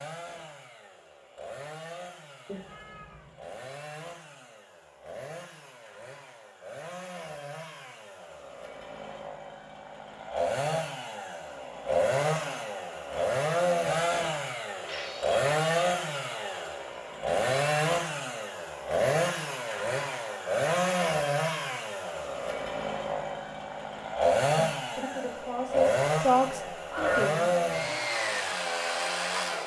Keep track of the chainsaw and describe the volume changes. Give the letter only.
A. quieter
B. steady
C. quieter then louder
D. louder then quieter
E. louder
E.